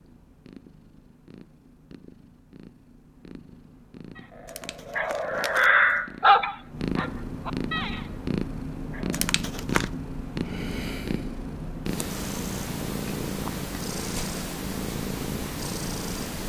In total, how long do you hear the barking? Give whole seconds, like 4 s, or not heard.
4 s.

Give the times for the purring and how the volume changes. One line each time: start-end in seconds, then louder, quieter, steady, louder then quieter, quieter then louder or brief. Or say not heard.
0.0-16.4 louder.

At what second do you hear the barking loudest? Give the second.
6 s.